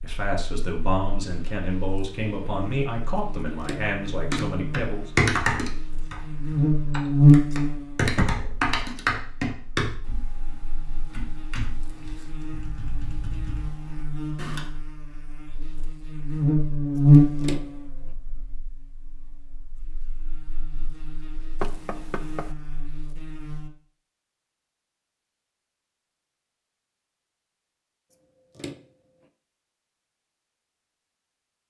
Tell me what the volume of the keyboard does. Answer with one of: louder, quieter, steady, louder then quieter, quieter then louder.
quieter.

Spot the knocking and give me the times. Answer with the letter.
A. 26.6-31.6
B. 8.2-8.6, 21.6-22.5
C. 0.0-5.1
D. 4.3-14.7
B.